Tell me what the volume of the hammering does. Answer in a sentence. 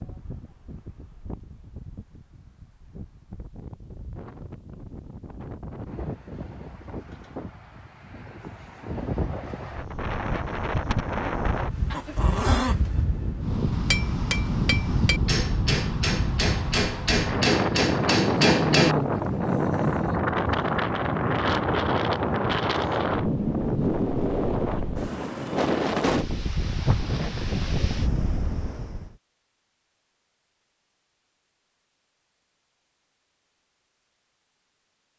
The volume of the hammering goes up.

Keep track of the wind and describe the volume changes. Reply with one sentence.
The loudness of the wind goes up.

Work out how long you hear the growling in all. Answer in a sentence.
The growling can be heard for 3 seconds in total.